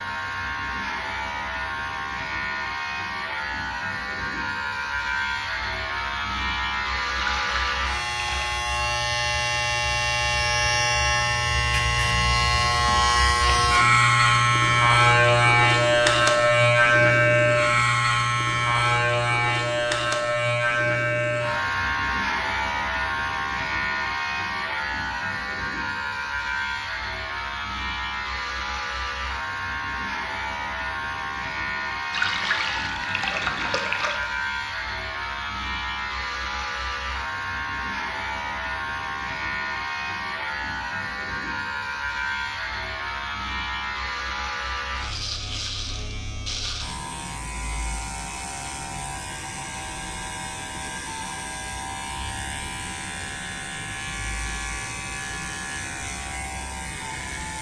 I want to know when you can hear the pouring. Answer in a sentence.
You can hear the pouring from 7.2 to 8.6 s and from 32.1 to 34.2 s.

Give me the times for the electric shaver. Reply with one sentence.
The electric shaver can be heard from 0.0 to 57.5 s.